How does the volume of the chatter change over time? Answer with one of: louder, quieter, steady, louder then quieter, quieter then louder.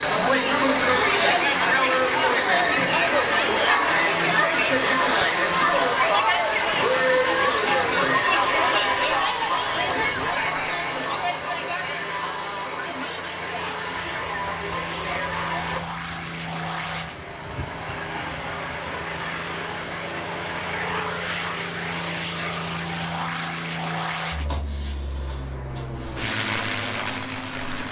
quieter.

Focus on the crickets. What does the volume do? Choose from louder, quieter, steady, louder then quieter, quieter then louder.
quieter.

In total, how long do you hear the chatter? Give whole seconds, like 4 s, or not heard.
16 s.